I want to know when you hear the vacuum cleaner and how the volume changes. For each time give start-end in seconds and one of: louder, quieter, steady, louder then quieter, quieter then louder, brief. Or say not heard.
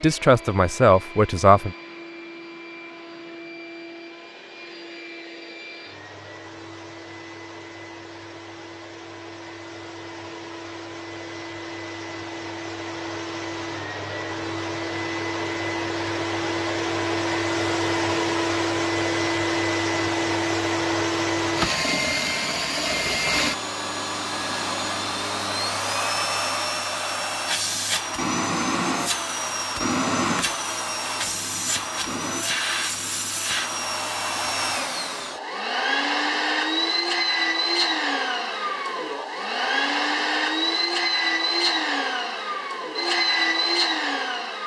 0.0-44.6 louder.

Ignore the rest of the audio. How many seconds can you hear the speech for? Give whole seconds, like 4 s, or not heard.
2 s.